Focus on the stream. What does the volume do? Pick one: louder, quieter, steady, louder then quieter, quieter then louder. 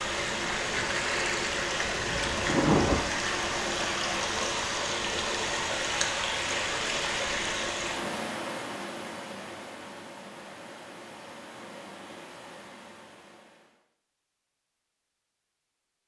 quieter.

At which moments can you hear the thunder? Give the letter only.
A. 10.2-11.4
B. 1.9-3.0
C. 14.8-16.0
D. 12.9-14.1
B.